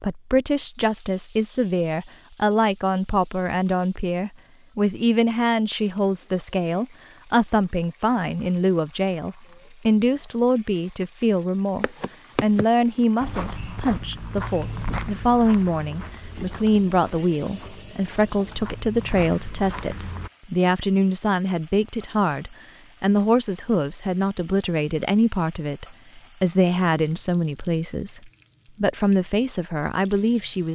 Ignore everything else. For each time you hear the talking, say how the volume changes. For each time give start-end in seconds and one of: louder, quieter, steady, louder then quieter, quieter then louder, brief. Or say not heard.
0.0-30.6 steady.